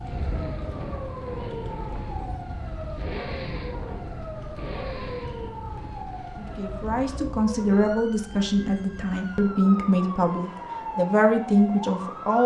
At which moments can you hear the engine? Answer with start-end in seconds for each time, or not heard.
0.0-6.3.